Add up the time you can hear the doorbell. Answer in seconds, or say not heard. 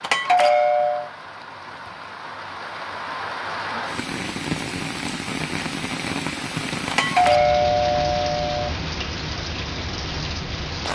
3 s.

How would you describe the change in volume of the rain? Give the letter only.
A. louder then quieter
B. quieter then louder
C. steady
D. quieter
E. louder
E.